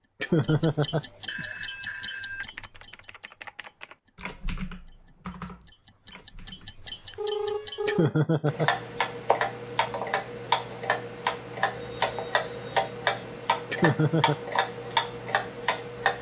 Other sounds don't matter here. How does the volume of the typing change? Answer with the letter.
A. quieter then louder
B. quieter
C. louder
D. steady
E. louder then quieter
E.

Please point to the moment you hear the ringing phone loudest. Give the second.
7 s.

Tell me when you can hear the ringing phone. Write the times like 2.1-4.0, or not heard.
1.2-2.5, 6.8-8.2, 11.7-12.9.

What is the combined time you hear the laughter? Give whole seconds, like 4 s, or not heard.
3 s.